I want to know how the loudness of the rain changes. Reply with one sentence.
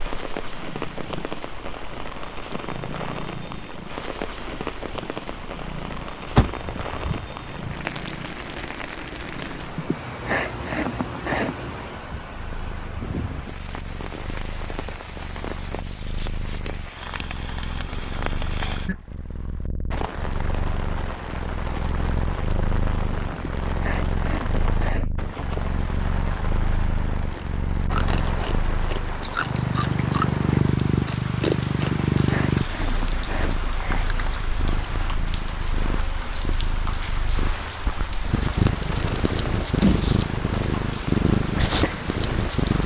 The volume of the rain stays about the same.